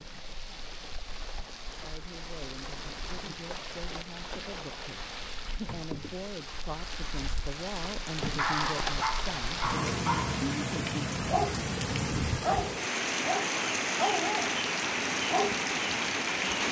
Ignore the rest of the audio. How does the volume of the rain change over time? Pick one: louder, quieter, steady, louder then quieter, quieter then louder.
louder.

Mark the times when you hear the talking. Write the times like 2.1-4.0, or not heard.
1.7-11.2.